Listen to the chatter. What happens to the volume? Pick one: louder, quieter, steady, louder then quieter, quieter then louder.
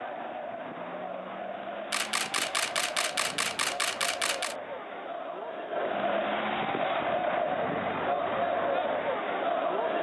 louder.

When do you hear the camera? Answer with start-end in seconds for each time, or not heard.
1.9-4.5.